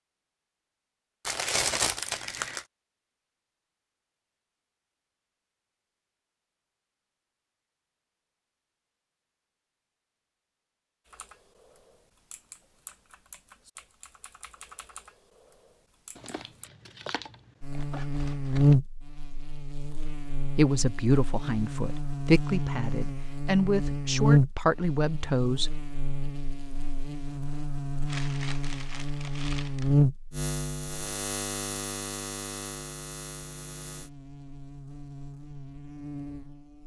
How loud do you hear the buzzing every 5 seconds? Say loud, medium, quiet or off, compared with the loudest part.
off, off, off, loud, loud, medium, medium, quiet.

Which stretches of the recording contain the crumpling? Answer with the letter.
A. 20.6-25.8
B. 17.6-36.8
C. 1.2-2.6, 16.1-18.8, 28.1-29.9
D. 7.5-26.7
C.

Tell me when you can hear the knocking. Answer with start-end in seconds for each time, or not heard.
not heard.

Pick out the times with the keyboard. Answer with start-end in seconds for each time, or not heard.
11.1-16.7.